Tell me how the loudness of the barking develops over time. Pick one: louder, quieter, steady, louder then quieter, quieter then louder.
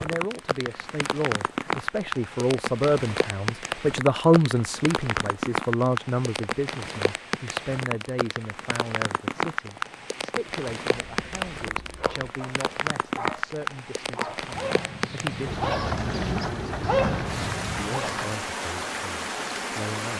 louder.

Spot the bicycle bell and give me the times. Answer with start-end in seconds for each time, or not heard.
not heard.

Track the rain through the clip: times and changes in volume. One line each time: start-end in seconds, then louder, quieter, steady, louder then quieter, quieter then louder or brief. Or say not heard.
0.0-20.1 steady.